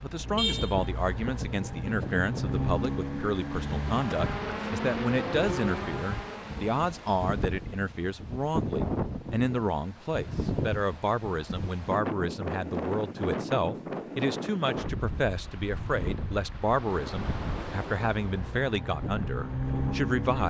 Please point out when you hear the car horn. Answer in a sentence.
You can hear the car horn from 0.3 to 0.8 s.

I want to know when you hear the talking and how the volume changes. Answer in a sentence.
The talking can be heard from 0.0 to 20.4 s, at a steady volume.